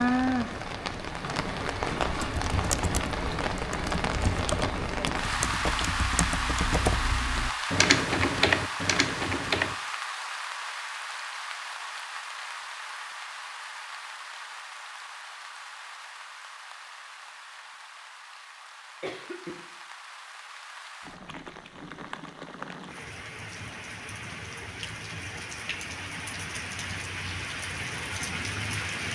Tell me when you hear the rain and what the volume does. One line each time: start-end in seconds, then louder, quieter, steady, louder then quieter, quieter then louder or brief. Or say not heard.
0.0-29.1 quieter then louder.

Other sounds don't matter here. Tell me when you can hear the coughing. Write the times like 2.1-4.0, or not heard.
19.0-19.6.